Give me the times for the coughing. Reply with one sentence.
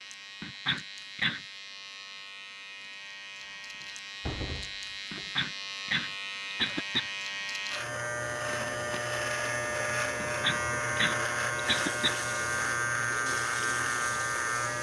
You can hear the coughing from 0.4 to 1.4 s, from 5.1 to 7.1 s and from 10.2 to 12.2 s.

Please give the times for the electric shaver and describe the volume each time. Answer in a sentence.
You can hear the electric shaver from 0.0 to 14.7 s, getting louder.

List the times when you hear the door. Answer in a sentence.
You can hear the door from 3.4 to 5.3 s and from 8.4 to 9.2 s.